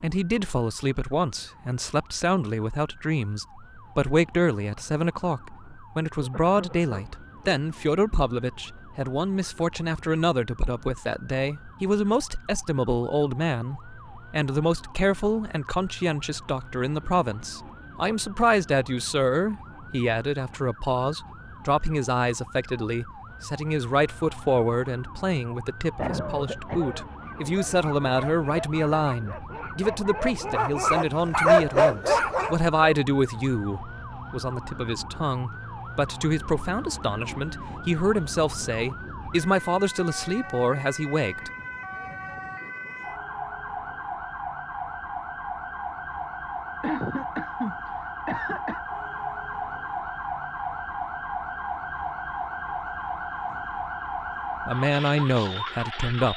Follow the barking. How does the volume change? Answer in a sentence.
The volume of the barking goes up.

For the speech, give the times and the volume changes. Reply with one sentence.
The speech can be heard from 0.0 to 41.5 s, at a steady volume; and briefly from 54.6 to 56.3 s.